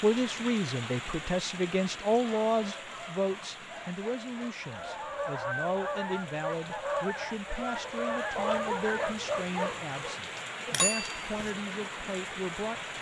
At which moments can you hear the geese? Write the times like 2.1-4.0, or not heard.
4.6-9.2.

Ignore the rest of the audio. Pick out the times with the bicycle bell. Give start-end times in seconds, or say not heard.
10.7-11.5.